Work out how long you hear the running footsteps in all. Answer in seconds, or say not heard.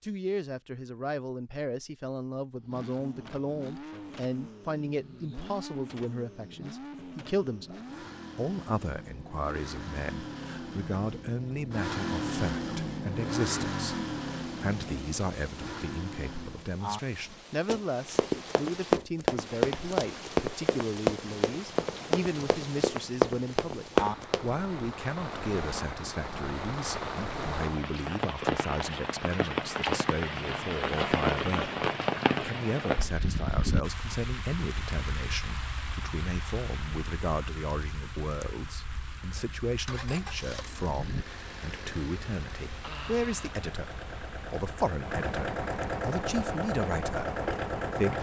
7 s.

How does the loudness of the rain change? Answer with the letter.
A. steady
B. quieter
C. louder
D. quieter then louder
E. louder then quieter
E.